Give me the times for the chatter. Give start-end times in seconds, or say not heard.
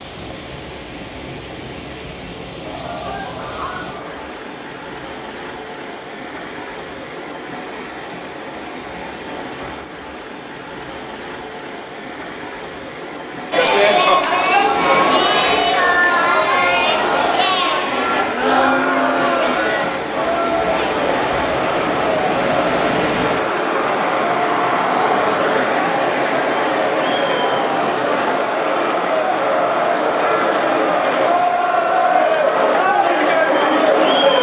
13.5-34.3.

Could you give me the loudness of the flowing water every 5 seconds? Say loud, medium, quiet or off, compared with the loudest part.
medium, medium, medium, medium, loud, loud, medium.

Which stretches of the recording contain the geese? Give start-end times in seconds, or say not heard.
2.6-4.2.